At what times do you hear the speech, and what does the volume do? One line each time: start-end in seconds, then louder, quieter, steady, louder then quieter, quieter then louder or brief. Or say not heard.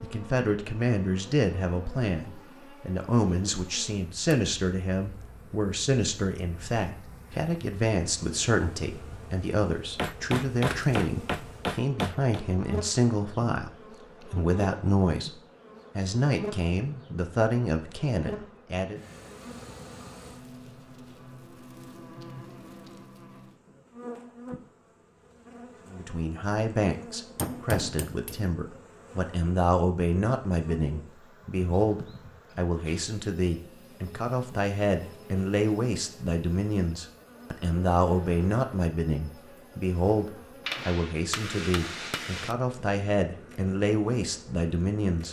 0.0-19.0 steady
25.9-45.2 steady.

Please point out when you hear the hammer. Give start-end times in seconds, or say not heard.
9.9-12.4, 27.4-28.4, 40.6-42.5.